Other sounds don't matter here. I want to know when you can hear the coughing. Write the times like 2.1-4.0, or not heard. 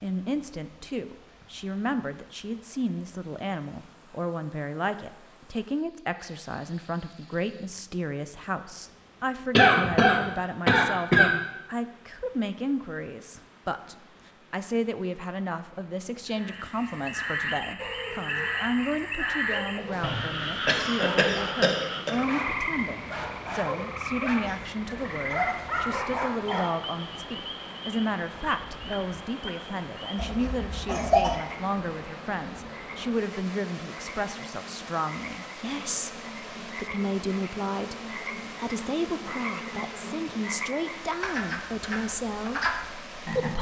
9.6-11.3, 20.6-22.2, 30.1-31.4.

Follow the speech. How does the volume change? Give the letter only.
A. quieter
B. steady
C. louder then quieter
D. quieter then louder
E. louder
B.